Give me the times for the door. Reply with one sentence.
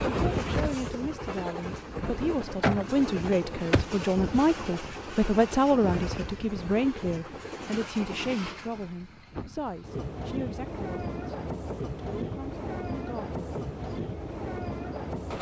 The door can be heard from 2.6 to 3.9 s.